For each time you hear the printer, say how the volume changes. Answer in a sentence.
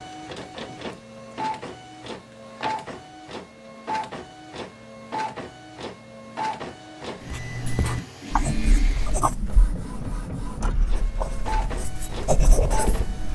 You can hear the printer from 0.0 to 13.2 s, at a steady volume.